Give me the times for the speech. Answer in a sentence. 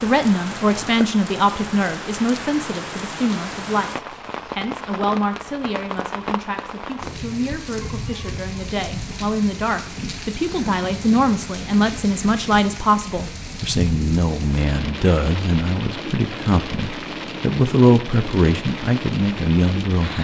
You can hear the speech from 0.0 to 20.2 s.